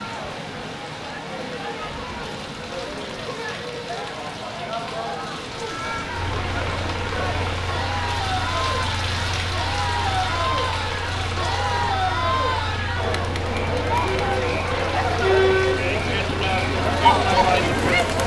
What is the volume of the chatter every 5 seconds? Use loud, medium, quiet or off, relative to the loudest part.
quiet, medium, medium, loud.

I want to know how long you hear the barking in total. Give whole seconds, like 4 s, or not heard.
not heard.